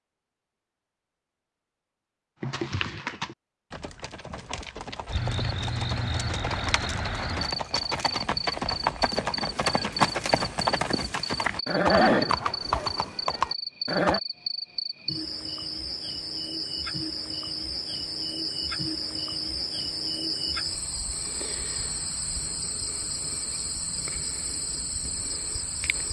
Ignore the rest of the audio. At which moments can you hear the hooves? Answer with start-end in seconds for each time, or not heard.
2.4-14.2.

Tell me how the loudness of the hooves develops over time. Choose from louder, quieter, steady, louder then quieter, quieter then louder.
louder.